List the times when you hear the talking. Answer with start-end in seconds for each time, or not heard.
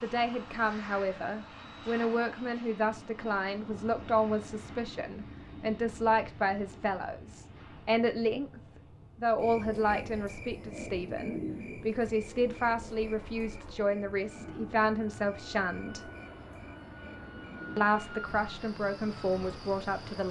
0.0-8.6, 9.2-16.0, 17.8-20.2.